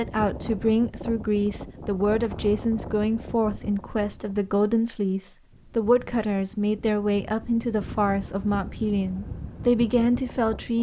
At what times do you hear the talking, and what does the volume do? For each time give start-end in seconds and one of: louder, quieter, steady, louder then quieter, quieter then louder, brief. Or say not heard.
0.0-10.7 steady.